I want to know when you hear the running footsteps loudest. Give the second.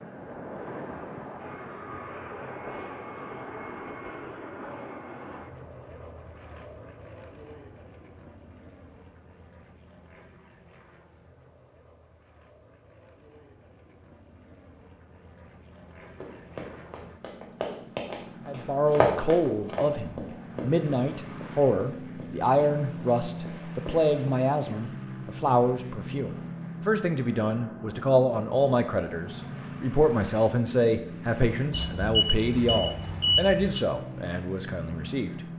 19 s.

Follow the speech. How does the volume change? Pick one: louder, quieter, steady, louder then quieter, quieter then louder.
steady.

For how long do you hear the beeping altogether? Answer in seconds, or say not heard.
2 s.